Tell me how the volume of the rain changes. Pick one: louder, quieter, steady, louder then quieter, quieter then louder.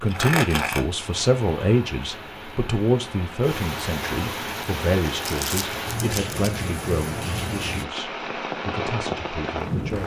louder.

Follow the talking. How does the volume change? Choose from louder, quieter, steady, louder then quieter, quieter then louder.
quieter.